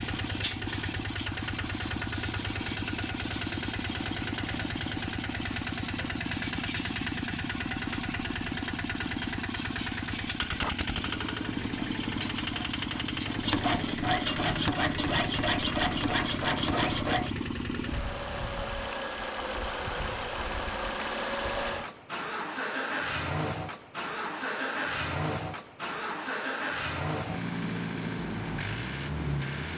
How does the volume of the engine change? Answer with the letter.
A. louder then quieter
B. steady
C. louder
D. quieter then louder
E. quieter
B.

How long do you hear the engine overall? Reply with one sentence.
The engine can be heard for 30 seconds in total.